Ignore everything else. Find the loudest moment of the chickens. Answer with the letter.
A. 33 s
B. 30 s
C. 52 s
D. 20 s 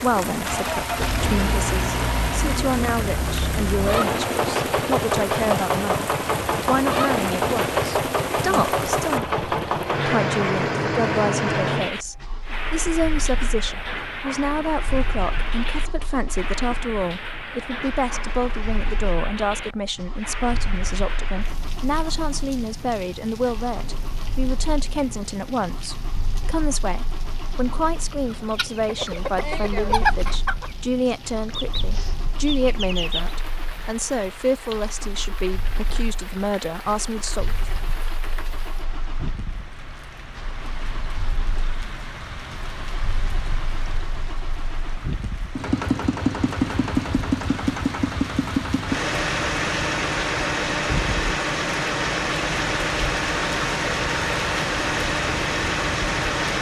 B.